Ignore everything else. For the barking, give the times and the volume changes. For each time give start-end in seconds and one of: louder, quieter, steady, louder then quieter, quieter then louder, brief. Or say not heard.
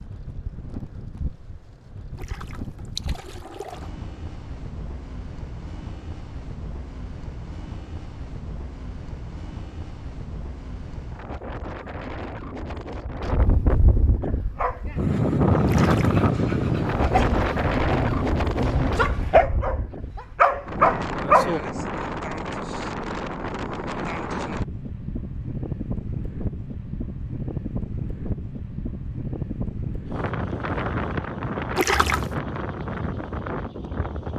14.6-21.6 louder.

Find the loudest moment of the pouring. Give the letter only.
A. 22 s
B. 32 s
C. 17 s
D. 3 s
B.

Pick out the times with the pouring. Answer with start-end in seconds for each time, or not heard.
2.1-3.9, 15.7-16.2, 31.8-32.4.